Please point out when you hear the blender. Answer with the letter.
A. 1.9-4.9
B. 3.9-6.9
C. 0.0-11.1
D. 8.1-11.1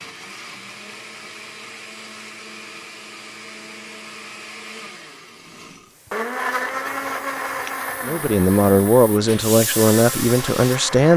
C.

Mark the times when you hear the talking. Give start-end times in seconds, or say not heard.
8.1-11.1.